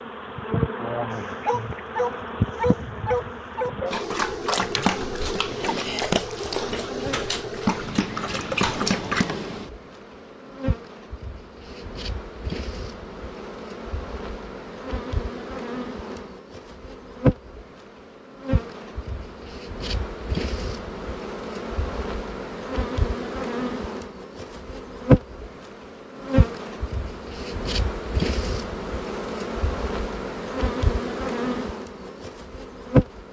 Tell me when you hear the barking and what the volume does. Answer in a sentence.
You can hear the barking from 1.1 to 9.2 s, at a steady volume.